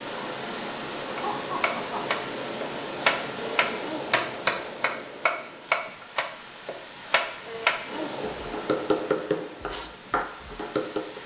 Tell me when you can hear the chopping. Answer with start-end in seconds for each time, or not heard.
1.1-11.2.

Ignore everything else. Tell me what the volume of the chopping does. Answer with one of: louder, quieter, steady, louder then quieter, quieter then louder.
steady.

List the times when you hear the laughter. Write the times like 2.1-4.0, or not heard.
1.1-2.0.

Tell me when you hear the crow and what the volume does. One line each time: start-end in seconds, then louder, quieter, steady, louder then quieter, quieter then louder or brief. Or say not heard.
not heard.